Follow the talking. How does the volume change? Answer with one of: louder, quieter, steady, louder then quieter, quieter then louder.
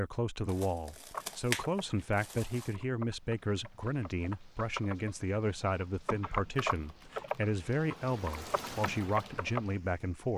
steady.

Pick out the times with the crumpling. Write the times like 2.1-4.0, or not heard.
0.5-2.8, 6.5-7.2.